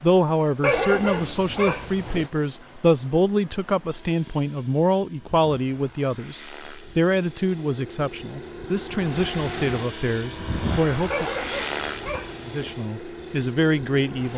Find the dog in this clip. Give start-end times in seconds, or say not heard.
0.6-2.3, 11.1-12.8.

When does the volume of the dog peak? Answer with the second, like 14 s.
1 s.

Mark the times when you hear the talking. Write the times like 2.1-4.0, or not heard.
0.0-11.3, 12.4-14.3.